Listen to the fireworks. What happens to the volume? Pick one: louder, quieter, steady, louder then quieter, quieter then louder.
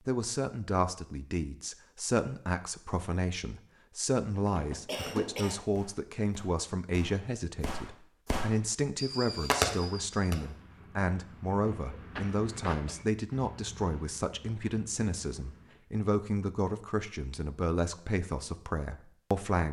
quieter then louder.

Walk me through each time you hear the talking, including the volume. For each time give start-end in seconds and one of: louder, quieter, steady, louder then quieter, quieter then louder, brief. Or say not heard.
0.1-19.6 steady.